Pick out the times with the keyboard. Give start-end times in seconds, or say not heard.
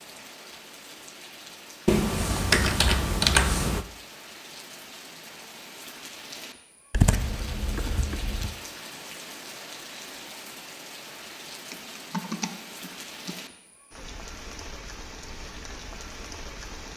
1.9-3.9, 6.9-8.6, 11.7-13.3.